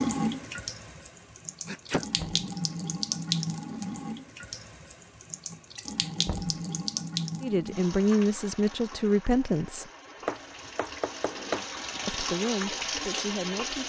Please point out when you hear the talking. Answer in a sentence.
You can hear the talking from 7.4 to 9.9 s and from 12.1 to 13.8 s.